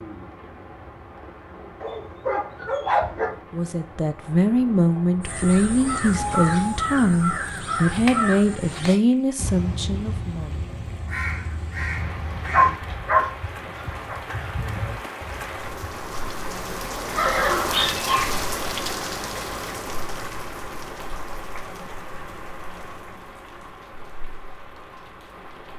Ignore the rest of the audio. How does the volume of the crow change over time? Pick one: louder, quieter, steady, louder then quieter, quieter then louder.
quieter.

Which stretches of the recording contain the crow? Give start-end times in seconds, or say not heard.
5.2-16.4.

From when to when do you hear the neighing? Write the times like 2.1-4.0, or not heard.
17.1-18.3.